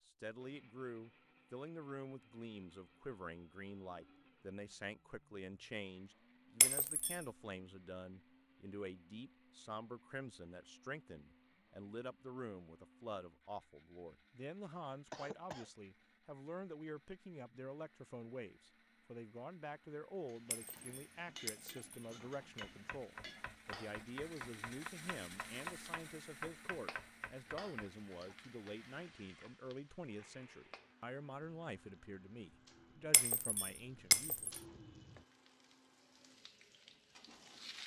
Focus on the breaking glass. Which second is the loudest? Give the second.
34 s.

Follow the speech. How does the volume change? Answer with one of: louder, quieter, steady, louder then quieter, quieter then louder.
steady.